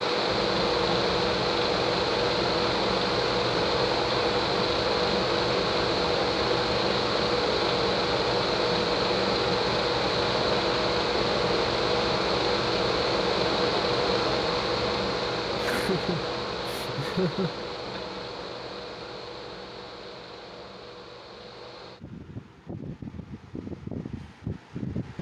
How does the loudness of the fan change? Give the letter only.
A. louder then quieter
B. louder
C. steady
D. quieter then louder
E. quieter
E.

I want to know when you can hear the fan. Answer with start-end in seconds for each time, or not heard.
0.0-25.1.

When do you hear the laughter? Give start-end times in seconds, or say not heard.
15.6-18.0.